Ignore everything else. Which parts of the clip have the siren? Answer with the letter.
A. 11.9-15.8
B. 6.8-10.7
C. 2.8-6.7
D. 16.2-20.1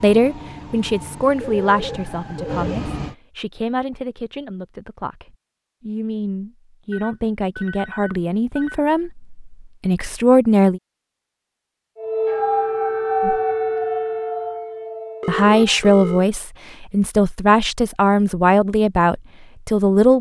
A.